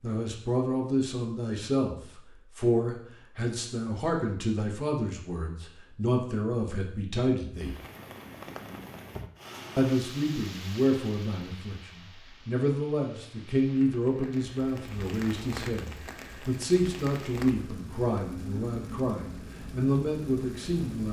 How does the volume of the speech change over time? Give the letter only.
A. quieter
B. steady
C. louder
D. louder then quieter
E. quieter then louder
B.